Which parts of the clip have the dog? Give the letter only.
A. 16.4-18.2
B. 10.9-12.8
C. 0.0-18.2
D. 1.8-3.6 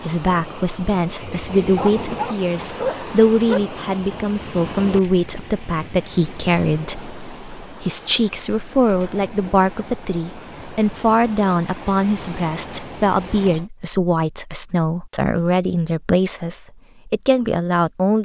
D.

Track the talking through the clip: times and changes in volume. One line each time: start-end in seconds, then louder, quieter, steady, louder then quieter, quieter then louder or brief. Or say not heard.
0.0-18.2 steady.